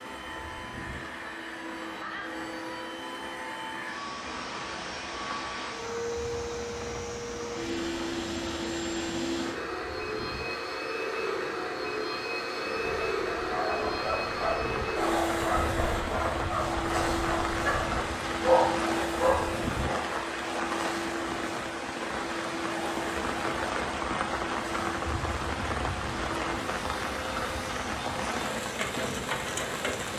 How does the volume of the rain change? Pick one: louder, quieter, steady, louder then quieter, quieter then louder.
louder.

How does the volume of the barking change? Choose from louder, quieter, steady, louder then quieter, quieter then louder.
louder.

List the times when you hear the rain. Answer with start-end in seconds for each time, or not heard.
0.0-30.1.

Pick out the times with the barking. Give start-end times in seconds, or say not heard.
12.8-20.1.